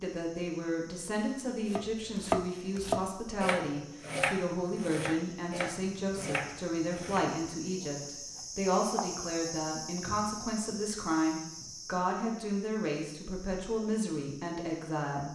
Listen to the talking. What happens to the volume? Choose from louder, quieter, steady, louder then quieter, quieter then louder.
steady.